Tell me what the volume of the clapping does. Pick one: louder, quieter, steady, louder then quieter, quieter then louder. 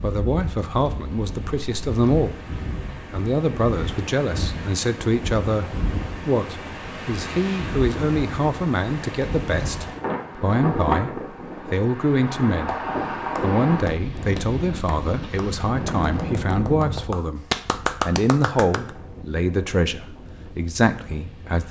quieter then louder.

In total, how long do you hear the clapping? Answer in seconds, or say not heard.
6 s.